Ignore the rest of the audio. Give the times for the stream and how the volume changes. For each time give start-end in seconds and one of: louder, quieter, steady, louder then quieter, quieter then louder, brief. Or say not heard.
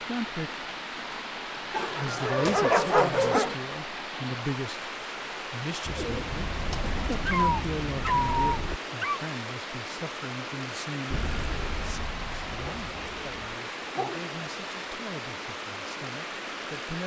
0.0-17.0 steady.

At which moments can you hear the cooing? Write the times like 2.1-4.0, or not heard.
5.8-8.8, 11.1-13.6.